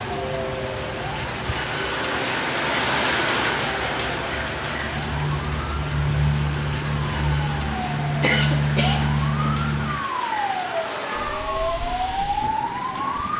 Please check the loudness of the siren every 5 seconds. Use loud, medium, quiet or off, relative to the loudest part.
medium, loud, loud.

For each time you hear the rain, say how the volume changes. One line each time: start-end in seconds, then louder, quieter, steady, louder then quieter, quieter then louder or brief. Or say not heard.
0.0-13.3 quieter.